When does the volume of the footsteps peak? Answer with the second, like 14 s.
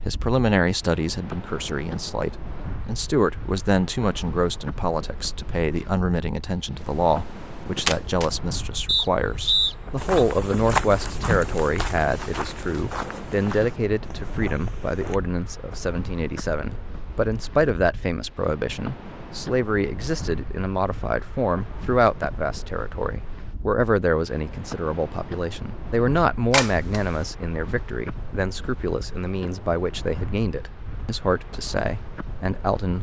11 s.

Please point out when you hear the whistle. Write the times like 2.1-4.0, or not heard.
8.8-10.2.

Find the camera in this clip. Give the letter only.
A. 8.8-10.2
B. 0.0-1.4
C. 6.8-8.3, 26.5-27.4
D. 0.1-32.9
C.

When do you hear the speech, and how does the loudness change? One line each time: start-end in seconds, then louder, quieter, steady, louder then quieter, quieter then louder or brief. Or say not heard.
0.1-32.9 steady.